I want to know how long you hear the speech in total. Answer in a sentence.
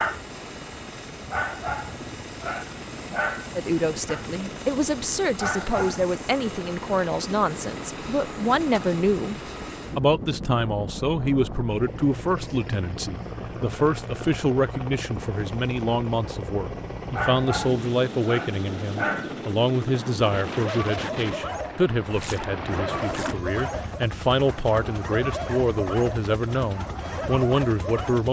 The speech can be heard for 24 seconds in total.